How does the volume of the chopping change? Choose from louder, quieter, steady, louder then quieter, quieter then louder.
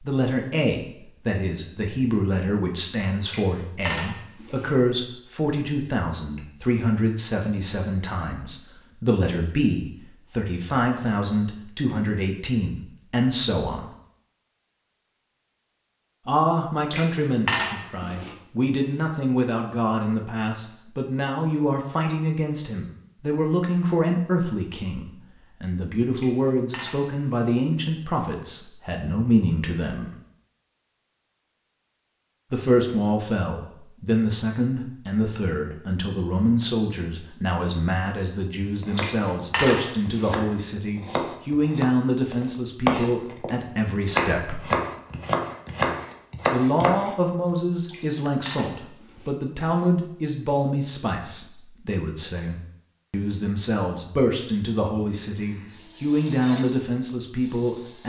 louder.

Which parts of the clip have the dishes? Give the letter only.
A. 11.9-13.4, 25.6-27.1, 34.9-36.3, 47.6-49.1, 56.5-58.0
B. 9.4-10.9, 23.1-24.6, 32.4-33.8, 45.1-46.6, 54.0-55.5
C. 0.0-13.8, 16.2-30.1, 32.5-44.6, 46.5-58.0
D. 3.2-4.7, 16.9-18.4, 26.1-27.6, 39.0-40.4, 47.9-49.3
D.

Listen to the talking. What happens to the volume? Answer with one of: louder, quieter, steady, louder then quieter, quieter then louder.
steady.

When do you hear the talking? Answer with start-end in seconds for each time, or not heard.
0.0-13.8, 16.2-30.1, 32.5-44.6, 46.5-58.0.